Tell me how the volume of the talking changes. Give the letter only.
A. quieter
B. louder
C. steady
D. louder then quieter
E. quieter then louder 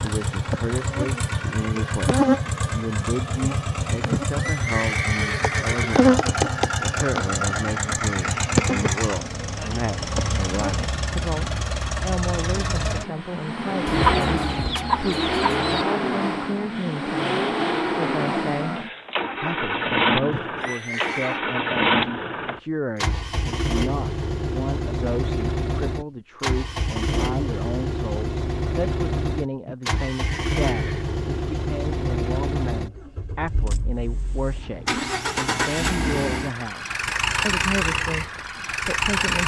C.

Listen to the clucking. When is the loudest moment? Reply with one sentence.
The loudest moment of the clucking is at 14 seconds.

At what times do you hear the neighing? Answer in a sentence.
You can hear the neighing from 4.1 to 6.1 s, from 20.3 to 21.4 s and from 29.6 to 31.1 s.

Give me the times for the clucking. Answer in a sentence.
The clucking can be heard from 13.8 to 15.8 s.